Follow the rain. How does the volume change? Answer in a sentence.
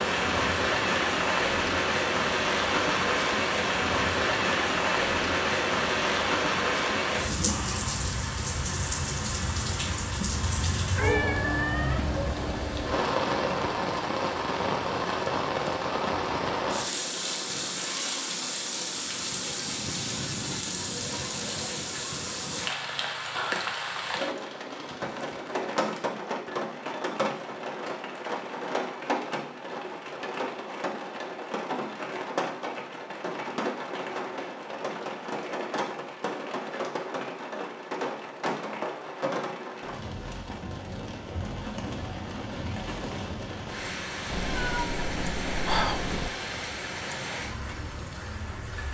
The loudness of the rain goes down.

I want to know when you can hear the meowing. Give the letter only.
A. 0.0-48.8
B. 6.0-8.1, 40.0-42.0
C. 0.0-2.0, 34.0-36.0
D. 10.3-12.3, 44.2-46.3
D.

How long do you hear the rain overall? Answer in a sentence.
The rain can be heard for 49 seconds in total.